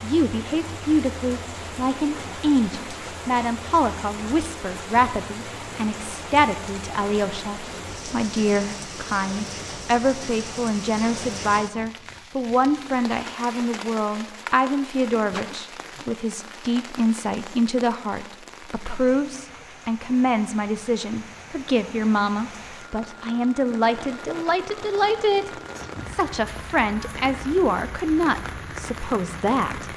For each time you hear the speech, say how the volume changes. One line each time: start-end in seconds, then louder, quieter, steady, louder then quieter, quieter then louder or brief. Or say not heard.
0.0-29.9 steady.